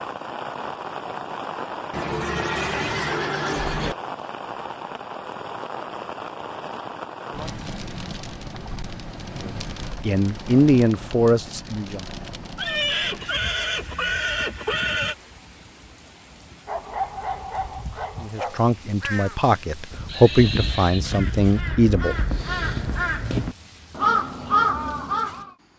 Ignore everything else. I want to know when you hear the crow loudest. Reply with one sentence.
The volume of the crow peaks at 25 seconds.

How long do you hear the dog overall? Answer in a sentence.
The dog can be heard for 2 seconds in total.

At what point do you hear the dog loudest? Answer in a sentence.
The volume of the dog peaks at 17 seconds.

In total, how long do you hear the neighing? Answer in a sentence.
The neighing can be heard for 6 seconds in total.